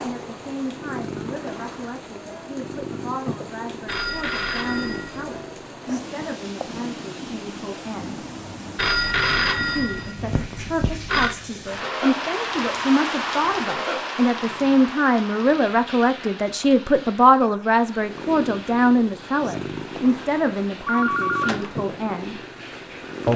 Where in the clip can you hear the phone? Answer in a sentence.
You can hear the phone from 3.9 to 5.3 s, from 8.8 to 11.3 s and from 20.9 to 21.8 s.